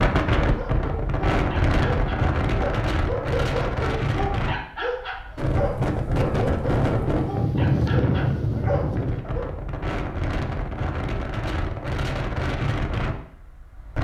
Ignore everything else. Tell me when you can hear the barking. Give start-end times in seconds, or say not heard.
0.4-9.4.